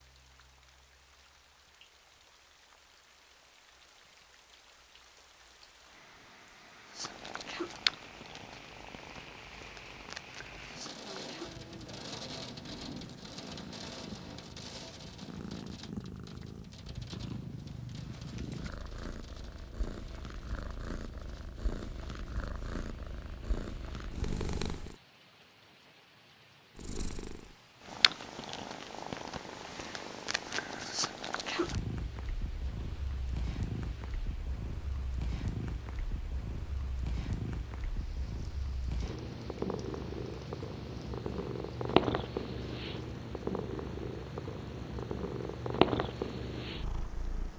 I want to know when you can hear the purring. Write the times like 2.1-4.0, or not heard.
6.8-24.9, 26.8-47.5.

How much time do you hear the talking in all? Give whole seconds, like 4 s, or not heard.
not heard.